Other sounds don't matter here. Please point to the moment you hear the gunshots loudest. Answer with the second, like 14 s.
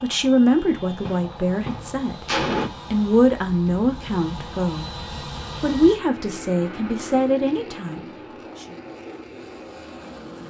2 s.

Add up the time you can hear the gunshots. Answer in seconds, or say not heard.
2 s.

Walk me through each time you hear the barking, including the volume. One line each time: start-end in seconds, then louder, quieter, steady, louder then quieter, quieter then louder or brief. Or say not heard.
not heard.